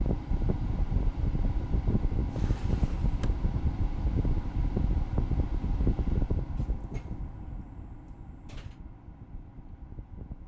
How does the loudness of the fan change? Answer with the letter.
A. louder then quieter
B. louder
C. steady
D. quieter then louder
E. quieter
E.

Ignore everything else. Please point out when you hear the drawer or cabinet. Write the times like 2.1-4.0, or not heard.
2.2-3.5, 6.5-8.8.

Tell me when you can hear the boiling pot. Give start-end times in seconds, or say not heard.
not heard.